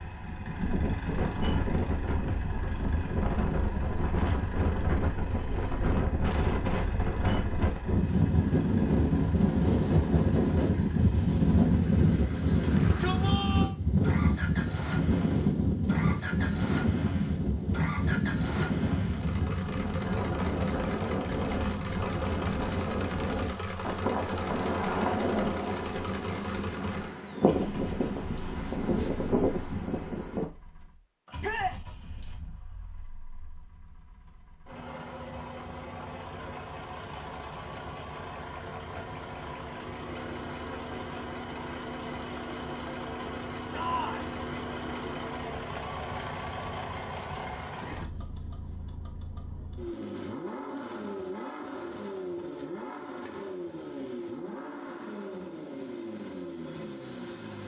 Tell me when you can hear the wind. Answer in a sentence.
The wind can be heard from 0.0 to 30.4 s.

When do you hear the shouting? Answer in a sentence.
You can hear the shouting from 12.6 to 13.8 s, from 31.4 to 31.8 s and from 43.7 to 44.4 s.